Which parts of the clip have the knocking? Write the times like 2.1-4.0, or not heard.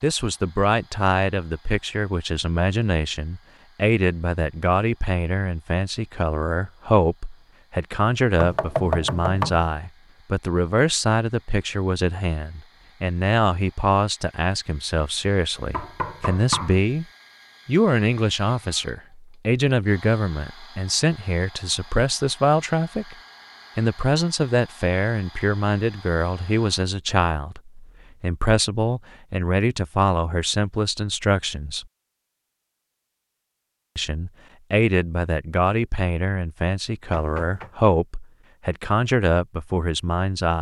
8.4-9.7, 15.7-16.8, 37.1-37.8.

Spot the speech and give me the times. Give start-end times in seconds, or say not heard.
0.0-17.1, 17.6-23.1, 23.8-31.9, 34.0-40.5.